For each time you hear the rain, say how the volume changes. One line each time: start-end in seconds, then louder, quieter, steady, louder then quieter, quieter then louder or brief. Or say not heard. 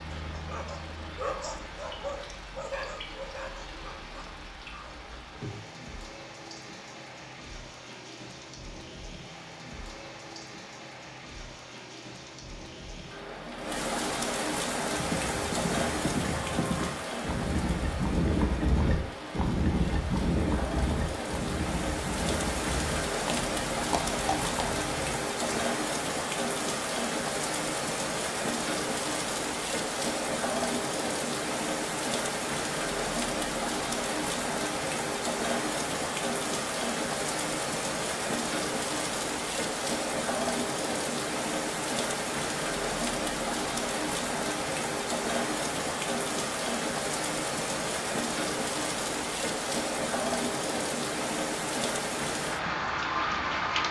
0.0-53.8 louder.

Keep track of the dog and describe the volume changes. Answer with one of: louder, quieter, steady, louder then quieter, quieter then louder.
quieter.